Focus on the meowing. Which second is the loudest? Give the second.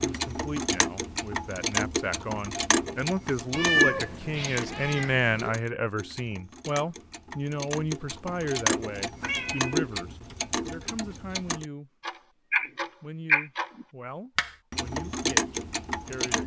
4 s.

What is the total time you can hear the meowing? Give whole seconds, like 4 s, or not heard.
3 s.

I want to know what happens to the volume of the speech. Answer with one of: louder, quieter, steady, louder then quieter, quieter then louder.
louder then quieter.